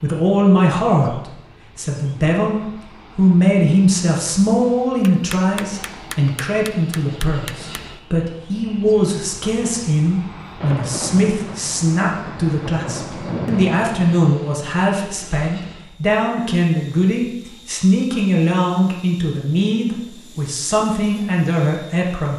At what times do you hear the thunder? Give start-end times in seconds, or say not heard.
10.6-14.1.